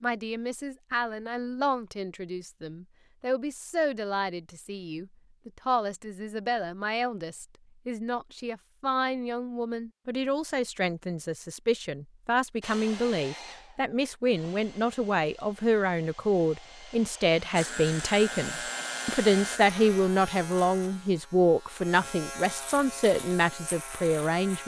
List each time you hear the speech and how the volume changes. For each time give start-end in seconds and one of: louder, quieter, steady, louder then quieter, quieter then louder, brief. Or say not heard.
0.0-24.6 louder.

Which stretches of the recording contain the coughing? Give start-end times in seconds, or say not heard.
not heard.